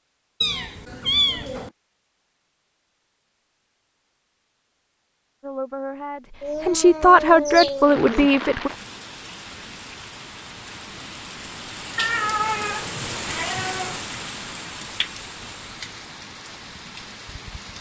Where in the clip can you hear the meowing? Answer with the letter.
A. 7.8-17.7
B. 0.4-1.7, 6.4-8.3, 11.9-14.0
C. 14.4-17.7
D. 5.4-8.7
B.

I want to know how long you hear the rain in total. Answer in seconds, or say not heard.
10 s.